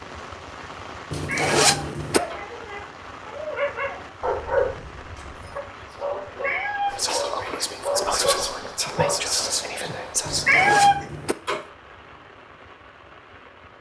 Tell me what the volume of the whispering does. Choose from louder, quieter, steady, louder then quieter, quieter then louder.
louder.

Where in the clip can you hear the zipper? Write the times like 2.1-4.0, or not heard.
1.1-2.2, 10.2-11.3.